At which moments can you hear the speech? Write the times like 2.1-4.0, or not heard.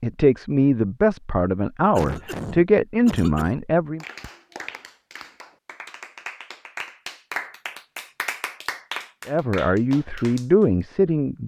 0.0-4.0, 9.2-11.4.